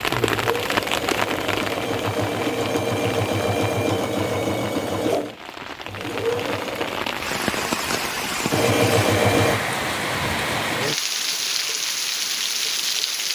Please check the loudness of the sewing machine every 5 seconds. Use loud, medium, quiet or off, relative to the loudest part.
loud, loud, off.